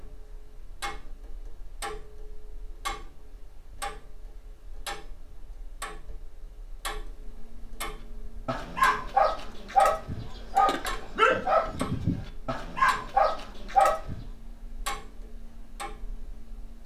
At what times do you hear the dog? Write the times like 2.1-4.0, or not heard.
8.4-14.2.